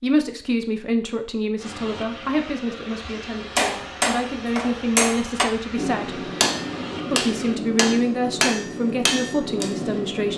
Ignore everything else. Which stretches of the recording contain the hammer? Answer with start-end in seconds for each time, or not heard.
3.5-10.3.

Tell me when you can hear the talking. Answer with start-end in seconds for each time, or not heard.
0.0-6.2, 7.1-10.3.